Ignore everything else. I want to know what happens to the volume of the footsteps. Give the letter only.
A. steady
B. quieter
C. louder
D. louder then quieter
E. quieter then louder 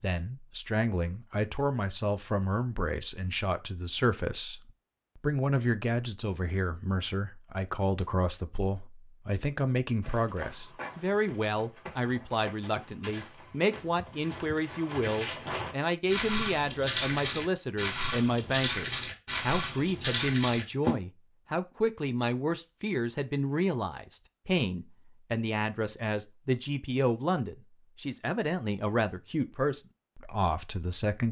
C.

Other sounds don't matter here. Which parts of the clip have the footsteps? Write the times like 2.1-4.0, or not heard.
10.0-20.9.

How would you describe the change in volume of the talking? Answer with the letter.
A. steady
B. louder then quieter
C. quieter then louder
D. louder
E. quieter
A.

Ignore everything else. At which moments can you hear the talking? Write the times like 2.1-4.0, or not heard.
0.0-31.2.